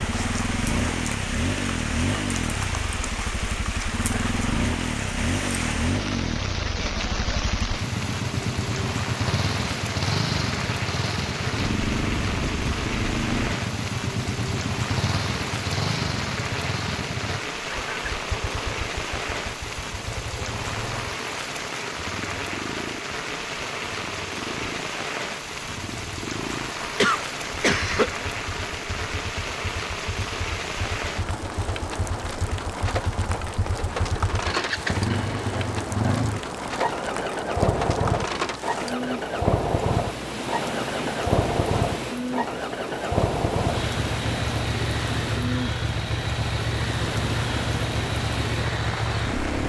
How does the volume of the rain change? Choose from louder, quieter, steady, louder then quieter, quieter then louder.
steady.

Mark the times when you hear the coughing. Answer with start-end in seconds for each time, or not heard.
26.9-28.1.